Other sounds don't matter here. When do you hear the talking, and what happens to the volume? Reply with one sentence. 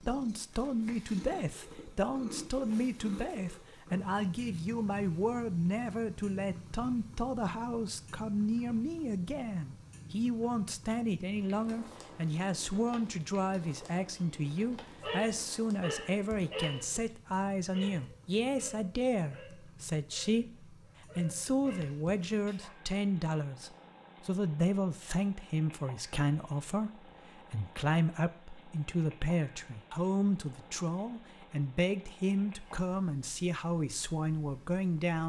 You can hear the talking from 0.1 to 35.2 s, at a steady volume.